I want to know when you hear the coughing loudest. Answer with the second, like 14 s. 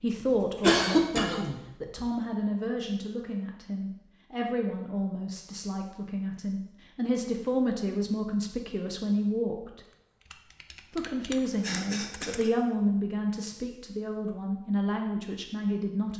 1 s.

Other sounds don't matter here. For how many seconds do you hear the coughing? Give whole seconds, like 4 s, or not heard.
2 s.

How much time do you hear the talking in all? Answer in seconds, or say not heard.
15 s.